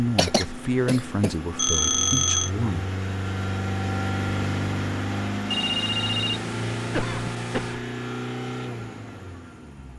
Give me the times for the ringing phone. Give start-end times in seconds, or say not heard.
1.6-2.5, 5.5-7.8.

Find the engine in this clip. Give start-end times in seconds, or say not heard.
0.0-9.9.